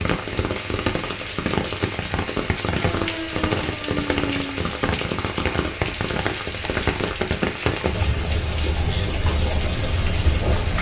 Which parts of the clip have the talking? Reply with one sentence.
The talking can't be heard in this clip.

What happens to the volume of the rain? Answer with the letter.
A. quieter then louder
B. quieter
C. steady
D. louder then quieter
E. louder
C.